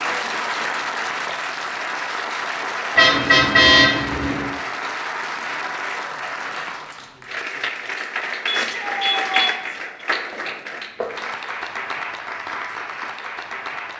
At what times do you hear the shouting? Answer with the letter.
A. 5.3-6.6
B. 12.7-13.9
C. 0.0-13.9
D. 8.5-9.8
D.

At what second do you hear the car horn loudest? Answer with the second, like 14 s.
4 s.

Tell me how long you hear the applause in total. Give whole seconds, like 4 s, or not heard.
14 s.